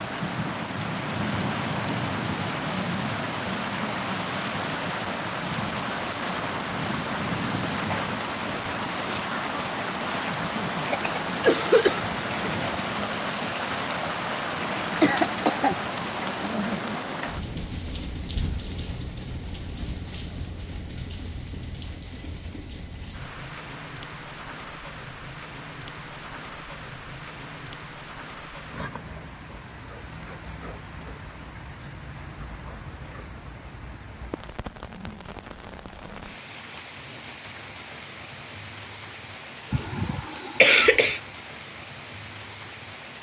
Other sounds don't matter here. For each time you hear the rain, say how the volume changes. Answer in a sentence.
You can hear the rain from 0.0 to 43.1 s, getting quieter.